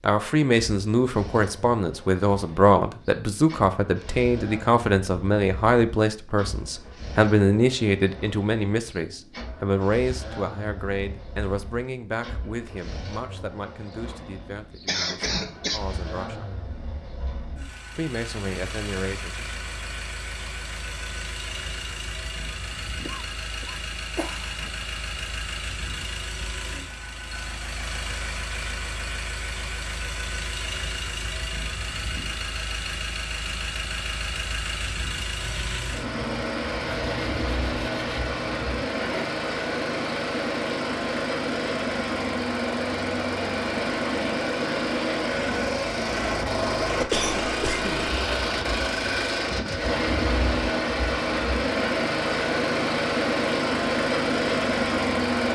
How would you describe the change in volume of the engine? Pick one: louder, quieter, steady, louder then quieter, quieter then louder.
louder.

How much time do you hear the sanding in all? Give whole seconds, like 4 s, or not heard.
4 s.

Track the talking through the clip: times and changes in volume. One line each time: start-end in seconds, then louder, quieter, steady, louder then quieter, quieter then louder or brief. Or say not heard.
0.0-16.5 quieter
17.9-19.4 brief.